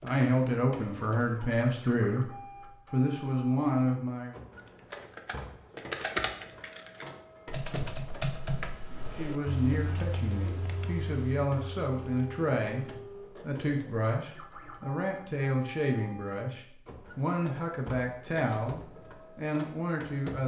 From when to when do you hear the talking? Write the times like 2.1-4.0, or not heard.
0.0-2.3, 2.9-4.3, 8.9-20.4.